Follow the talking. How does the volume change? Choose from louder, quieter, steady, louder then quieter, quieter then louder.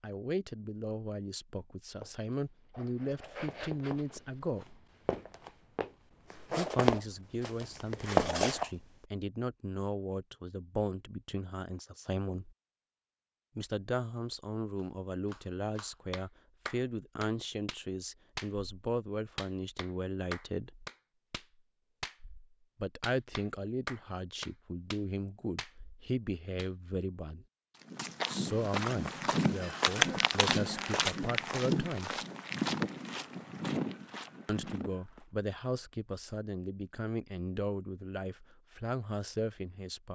steady.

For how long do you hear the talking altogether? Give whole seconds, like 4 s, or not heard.
32 s.